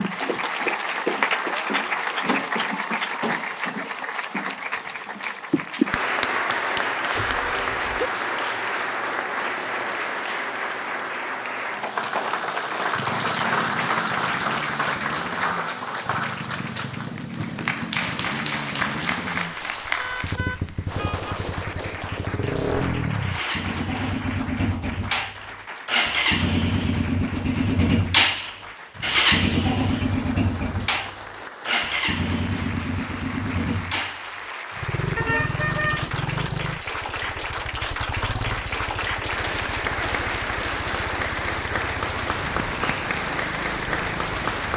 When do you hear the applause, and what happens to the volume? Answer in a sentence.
You can hear the applause from 0.0 to 44.7 s, getting quieter then louder.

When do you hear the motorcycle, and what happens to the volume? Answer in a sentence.
You can hear the motorcycle from 12.9 to 44.7 s, getting louder then quieter.